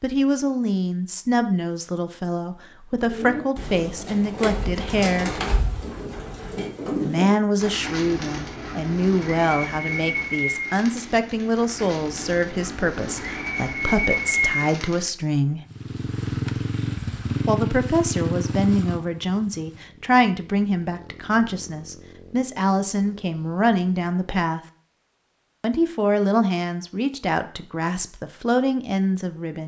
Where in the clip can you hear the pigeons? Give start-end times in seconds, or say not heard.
3.0-15.1.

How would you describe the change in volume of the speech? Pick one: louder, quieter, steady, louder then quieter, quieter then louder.
steady.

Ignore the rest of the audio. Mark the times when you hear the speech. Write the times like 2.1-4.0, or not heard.
0.0-5.4, 7.0-15.6, 17.4-24.6, 25.6-29.6.